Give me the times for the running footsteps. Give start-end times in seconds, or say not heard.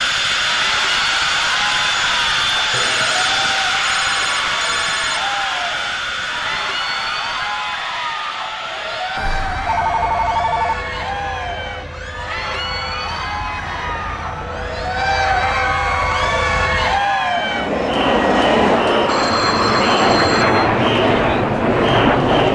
not heard.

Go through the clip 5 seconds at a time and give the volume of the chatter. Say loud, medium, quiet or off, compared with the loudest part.
medium, medium, medium, loud, loud.